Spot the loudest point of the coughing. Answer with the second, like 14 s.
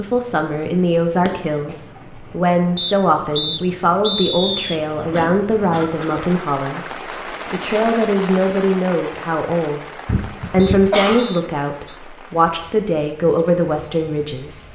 11 s.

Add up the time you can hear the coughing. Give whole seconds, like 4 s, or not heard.
3 s.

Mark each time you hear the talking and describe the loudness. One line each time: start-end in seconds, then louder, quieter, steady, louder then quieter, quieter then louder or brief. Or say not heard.
0.0-14.6 steady.